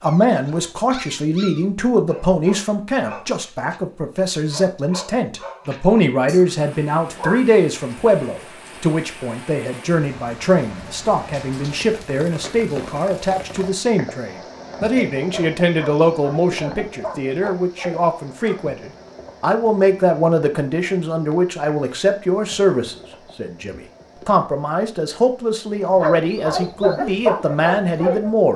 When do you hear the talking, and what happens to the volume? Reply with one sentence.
You can hear the talking from 0.0 to 28.5 s, at a steady volume.